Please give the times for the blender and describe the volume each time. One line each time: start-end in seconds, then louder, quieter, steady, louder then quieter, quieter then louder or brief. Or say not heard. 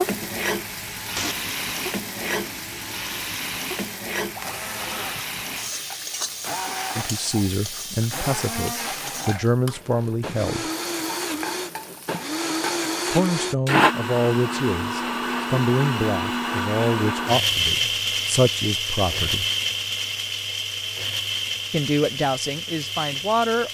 0.0-23.6 louder.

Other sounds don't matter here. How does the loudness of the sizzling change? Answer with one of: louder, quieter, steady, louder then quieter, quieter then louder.
quieter.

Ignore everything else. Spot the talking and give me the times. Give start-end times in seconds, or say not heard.
7.0-10.7, 13.1-19.4, 21.7-23.6.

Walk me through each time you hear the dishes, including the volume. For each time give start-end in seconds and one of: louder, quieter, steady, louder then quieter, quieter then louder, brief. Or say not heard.
not heard.